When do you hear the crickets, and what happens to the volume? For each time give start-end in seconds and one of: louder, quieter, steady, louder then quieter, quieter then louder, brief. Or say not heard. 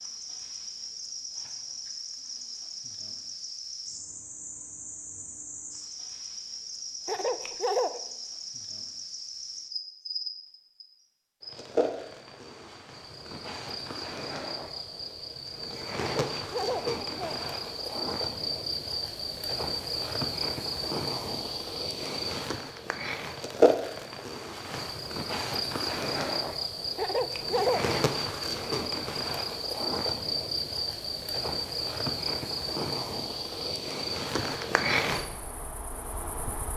0.0-36.7 louder.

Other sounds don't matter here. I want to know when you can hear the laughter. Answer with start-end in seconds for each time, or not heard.
7.0-8.0, 15.9-17.4, 26.9-27.9.